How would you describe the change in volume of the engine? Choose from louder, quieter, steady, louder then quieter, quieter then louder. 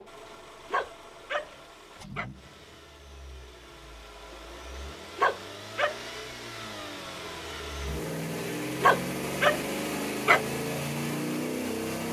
louder.